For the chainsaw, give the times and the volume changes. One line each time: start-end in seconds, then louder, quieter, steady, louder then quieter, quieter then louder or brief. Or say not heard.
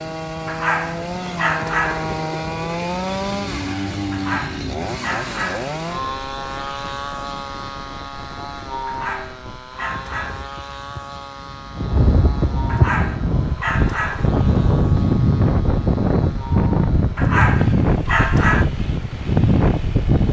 0.0-20.2 quieter.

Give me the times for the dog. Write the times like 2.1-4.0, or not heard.
0.5-2.2, 4.1-6.0, 8.8-10.4, 12.7-14.3, 17.1-18.7.